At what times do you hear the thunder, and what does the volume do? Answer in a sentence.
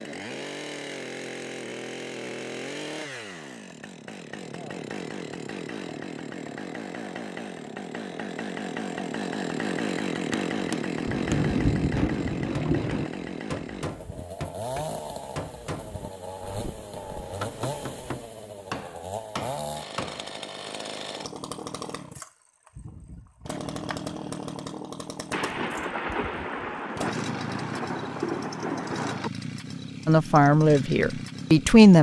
You can hear the thunder briefly from 11.1 to 13.1 s; and from 25.3 to 29.3 s, at a steady volume.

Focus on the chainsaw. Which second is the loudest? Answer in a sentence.
The loudest moment of the chainsaw is at 10 seconds.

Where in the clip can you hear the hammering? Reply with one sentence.
You can hear the hammering from 10.3 to 20.4 s.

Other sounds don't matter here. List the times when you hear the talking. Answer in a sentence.
You can hear the talking from 30.1 to 31.9 s.